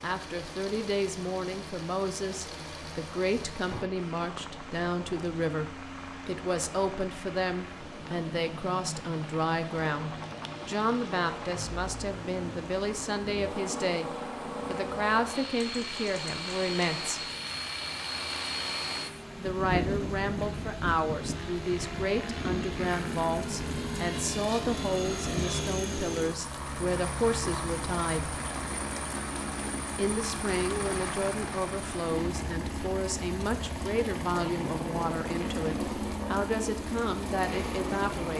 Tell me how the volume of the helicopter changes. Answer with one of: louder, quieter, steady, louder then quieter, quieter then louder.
louder.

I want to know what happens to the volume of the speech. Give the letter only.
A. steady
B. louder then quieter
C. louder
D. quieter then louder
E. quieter
A.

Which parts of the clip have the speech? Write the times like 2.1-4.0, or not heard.
0.0-17.2, 19.4-28.4, 29.9-38.3.